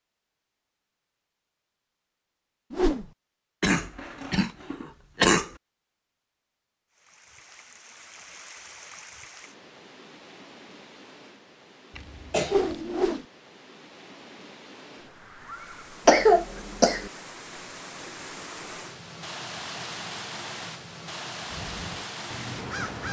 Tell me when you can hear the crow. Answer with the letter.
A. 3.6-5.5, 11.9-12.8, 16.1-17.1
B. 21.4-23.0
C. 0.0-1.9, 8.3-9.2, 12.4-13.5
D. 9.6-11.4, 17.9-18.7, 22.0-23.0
B.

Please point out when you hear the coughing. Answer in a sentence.
The coughing can be heard from 3.6 to 5.5 s, from 11.9 to 12.8 s and from 16.1 to 17.1 s.